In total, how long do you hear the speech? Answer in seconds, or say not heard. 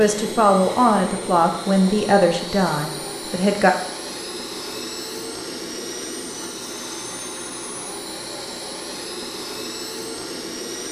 4 s.